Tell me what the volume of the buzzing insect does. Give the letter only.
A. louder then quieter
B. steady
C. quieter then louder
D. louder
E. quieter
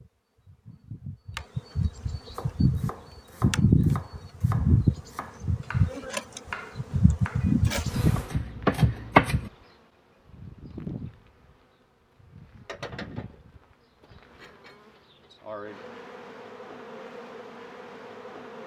E.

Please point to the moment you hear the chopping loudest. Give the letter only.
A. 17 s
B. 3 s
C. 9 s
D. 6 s
C.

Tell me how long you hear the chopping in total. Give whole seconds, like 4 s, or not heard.
7 s.